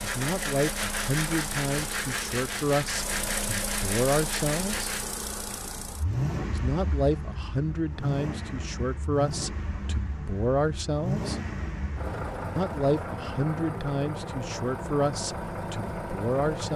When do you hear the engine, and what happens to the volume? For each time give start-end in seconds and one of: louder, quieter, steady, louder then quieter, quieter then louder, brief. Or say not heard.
0.0-16.7 steady.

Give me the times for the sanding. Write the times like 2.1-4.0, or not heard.
0.0-5.0.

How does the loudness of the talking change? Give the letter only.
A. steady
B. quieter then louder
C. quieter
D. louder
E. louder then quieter
A.